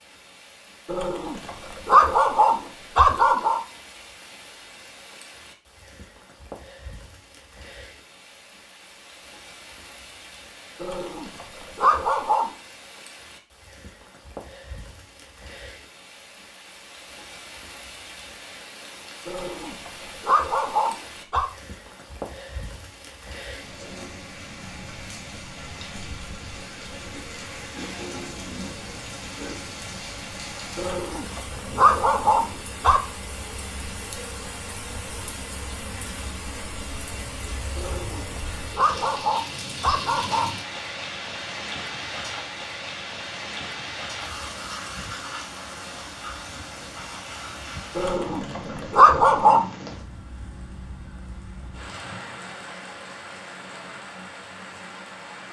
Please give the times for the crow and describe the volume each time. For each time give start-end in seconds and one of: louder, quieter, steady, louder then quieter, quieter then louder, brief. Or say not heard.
not heard.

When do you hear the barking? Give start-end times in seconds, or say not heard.
0.8-3.6, 10.8-12.5, 19.2-21.4, 30.8-33.0, 37.8-40.5, 48.0-49.6.